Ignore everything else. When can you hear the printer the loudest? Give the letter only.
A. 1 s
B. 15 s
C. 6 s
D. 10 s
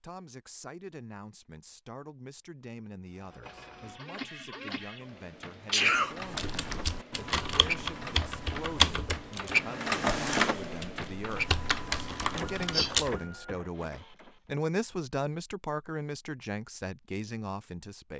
D.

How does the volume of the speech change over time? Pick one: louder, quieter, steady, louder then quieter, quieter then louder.
louder.